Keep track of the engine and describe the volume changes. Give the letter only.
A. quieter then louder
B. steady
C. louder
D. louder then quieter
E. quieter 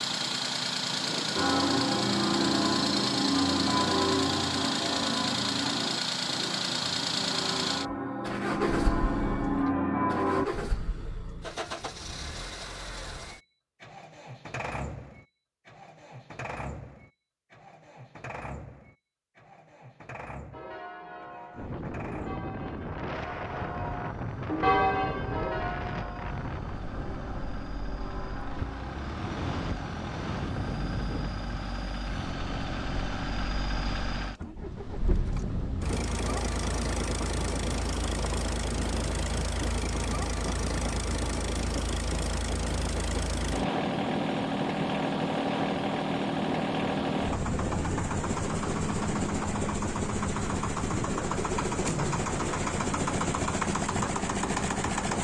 A.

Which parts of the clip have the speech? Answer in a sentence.
You can't hear the speech here.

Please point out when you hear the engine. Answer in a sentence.
The engine can be heard from 0.0 to 55.2 s.